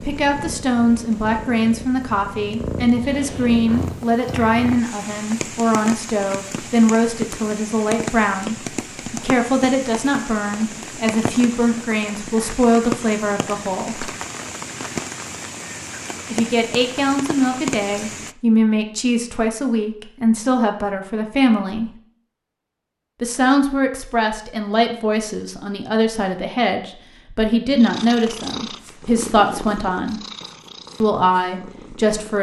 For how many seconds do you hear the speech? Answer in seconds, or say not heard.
28 s.